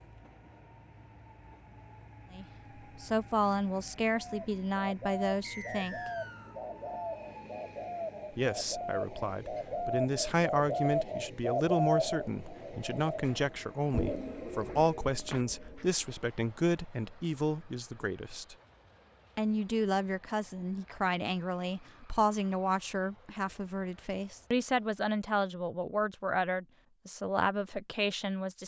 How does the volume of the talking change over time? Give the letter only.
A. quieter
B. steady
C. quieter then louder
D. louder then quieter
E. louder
B.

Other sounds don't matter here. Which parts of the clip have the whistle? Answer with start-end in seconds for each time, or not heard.
5.4-6.5.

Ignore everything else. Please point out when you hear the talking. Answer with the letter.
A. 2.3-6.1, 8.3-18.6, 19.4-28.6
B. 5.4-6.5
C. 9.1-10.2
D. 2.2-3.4
A.